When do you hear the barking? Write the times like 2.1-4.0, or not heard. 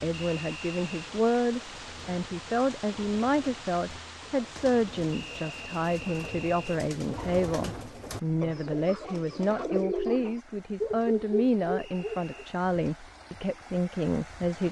10.8-12.4.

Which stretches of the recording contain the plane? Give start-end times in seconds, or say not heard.
not heard.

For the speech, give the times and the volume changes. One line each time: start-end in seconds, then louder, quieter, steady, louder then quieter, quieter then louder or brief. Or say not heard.
0.0-14.6 steady.